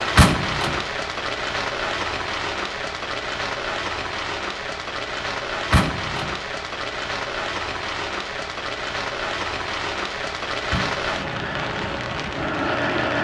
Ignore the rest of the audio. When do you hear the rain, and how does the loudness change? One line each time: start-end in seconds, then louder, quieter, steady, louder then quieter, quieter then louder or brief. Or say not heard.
0.0-13.2 steady.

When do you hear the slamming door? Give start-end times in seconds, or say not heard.
0.1-0.8, 5.7-6.3, 10.7-11.2.